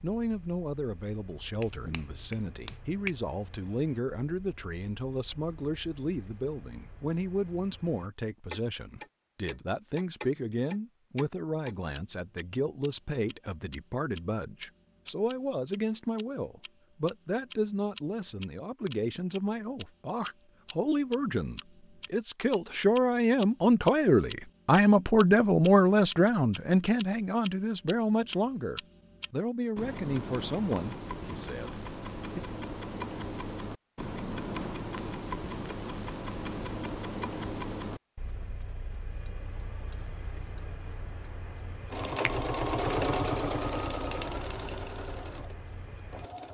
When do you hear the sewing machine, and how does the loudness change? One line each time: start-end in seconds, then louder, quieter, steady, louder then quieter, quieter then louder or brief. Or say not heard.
41.9-46.4 quieter.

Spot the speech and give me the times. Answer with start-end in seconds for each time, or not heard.
0.0-32.4.